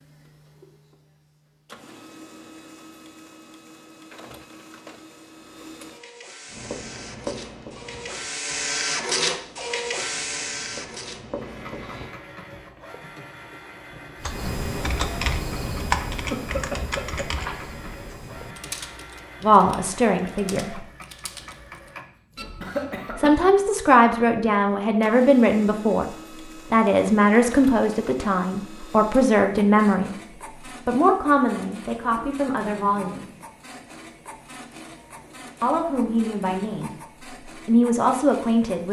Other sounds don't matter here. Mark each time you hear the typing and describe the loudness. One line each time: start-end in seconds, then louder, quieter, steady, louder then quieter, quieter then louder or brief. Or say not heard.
14.2-21.9 quieter.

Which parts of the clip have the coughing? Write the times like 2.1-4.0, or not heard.
16.3-17.6, 22.6-23.4.